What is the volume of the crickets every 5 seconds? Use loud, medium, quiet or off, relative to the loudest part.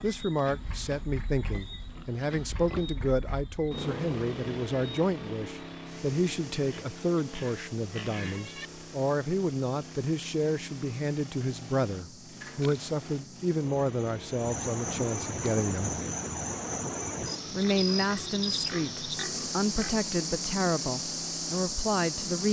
quiet, quiet, medium, loud, loud.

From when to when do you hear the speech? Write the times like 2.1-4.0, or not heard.
0.0-15.9, 17.5-22.4.